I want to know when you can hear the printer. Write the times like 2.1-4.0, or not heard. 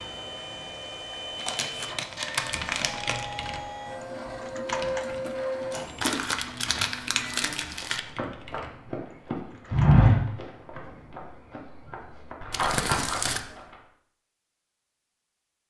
0.0-7.8.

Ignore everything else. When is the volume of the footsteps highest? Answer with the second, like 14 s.
10 s.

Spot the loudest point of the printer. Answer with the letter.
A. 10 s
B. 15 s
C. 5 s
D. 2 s
C.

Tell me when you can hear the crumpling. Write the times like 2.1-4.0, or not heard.
1.4-3.2, 6.0-8.0, 12.5-13.4.